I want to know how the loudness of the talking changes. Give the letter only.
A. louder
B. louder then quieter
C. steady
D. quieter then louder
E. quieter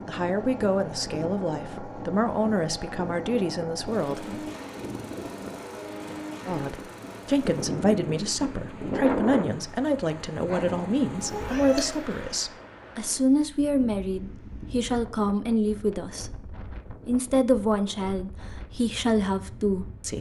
C.